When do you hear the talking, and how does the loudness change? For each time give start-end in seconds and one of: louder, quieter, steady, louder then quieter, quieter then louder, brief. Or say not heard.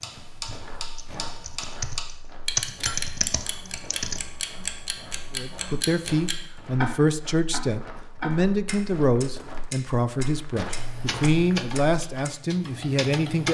5.3-13.4 steady.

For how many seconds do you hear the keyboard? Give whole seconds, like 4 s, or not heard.
7 s.